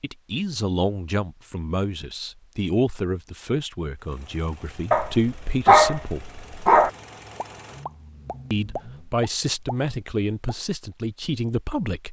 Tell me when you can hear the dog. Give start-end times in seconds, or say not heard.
4.9-6.9.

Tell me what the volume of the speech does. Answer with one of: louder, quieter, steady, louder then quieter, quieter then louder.
steady.